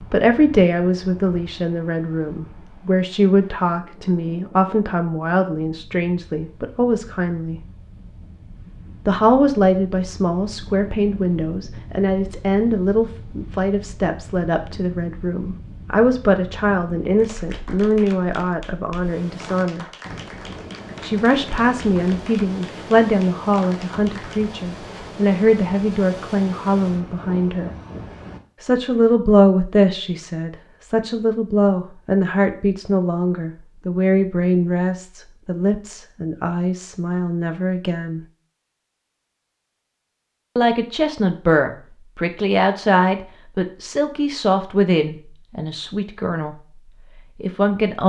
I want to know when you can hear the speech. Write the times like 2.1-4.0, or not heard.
0.0-7.6, 9.1-19.9, 21.0-27.7, 28.6-38.2, 40.5-46.5, 47.4-48.0.